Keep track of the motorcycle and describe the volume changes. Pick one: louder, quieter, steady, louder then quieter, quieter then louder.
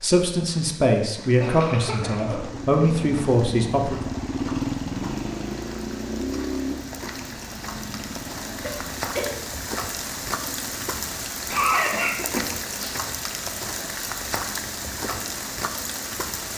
quieter.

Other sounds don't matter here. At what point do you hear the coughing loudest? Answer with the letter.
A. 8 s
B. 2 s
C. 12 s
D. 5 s
C.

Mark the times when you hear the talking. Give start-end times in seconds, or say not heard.
0.0-4.0.